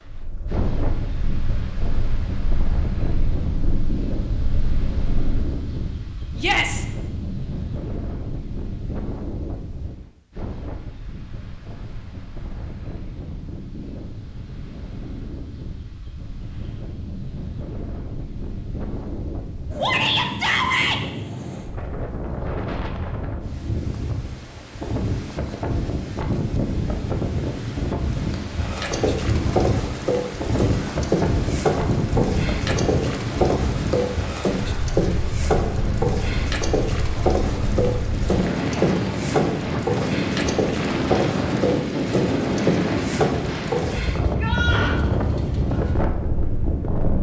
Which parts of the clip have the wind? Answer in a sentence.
The wind can be heard from 0.1 to 47.1 s.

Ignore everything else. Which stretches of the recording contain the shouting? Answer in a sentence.
The shouting can be heard from 6.3 to 6.8 s, from 19.8 to 21.0 s and from 44.2 to 45.0 s.